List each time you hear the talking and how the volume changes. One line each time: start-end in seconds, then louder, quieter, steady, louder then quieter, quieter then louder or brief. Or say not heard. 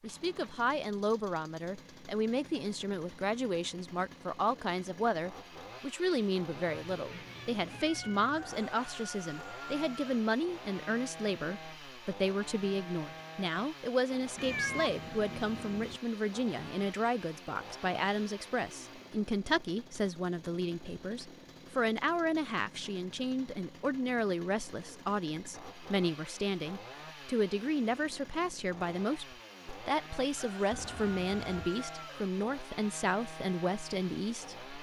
0.0-34.6 steady.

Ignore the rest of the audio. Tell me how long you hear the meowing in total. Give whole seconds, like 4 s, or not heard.
4 s.